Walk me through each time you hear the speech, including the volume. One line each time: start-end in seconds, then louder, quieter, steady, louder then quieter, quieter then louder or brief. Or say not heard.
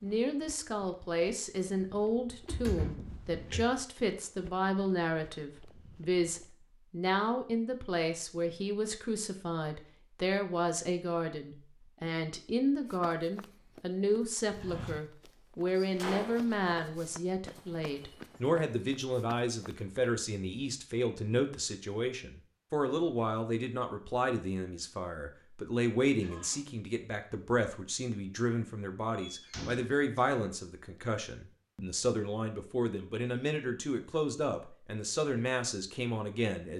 0.0-36.7 steady.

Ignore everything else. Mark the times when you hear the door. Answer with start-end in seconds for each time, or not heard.
2.3-3.7, 15.8-16.5, 29.1-30.2.